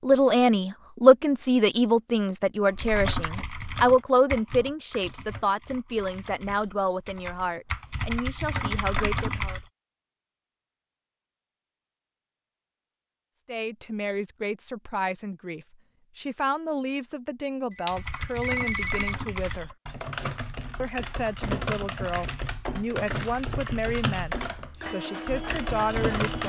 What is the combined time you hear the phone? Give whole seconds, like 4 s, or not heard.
2 s.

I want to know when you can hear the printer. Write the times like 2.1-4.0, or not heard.
24.8-26.4.